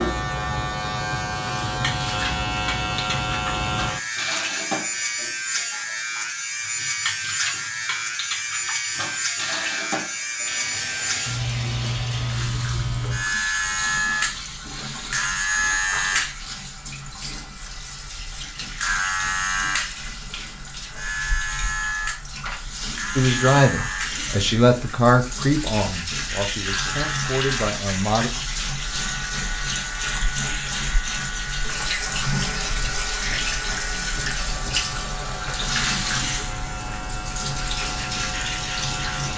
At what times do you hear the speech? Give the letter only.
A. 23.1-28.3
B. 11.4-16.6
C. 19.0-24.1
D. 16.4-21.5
A.